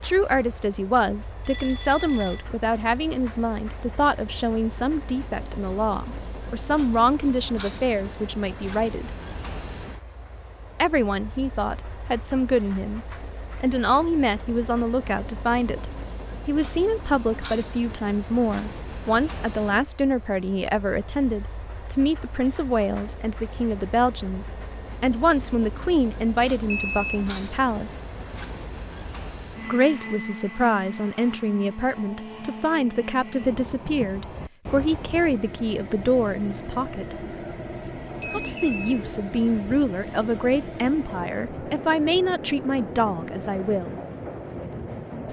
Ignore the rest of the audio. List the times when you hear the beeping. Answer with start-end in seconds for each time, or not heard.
1.4-2.5, 26.7-27.2, 38.1-39.0.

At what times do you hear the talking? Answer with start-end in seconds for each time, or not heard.
0.0-9.1, 10.8-28.0, 29.6-37.1, 38.3-44.0.